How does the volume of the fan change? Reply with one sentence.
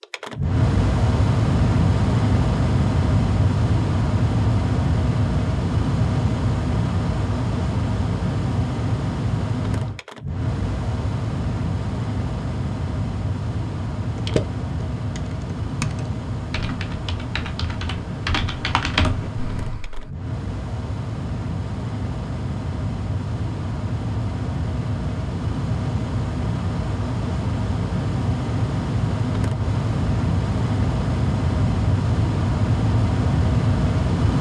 The volume of the fan goes down, then up.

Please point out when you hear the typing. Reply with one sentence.
You can hear the typing from 14.2 to 20.1 s.